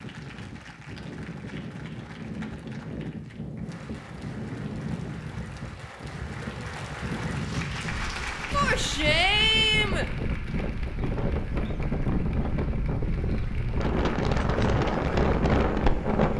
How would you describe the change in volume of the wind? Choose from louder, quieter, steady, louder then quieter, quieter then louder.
louder.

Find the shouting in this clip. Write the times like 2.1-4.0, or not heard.
8.5-10.1.